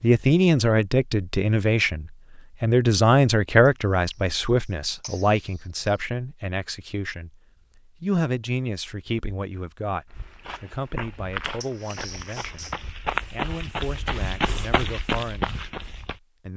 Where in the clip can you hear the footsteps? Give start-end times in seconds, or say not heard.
10.1-16.2.